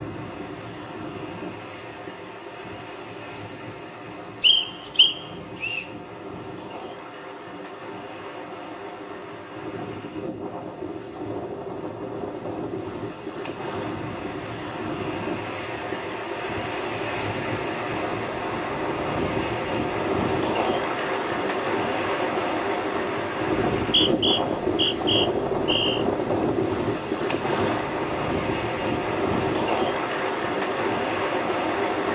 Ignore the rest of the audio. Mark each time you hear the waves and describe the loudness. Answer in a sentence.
The waves can be heard from 0.0 to 32.1 s, getting louder.